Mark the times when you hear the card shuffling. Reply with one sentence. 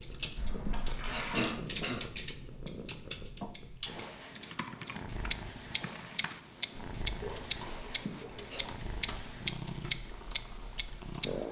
You can't hear the card shuffling here.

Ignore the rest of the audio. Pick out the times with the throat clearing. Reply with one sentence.
You can hear the throat clearing from 0.7 to 2.0 s and from 8.1 to 8.7 s.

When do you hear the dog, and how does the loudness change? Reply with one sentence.
The dog can't be heard in this clip.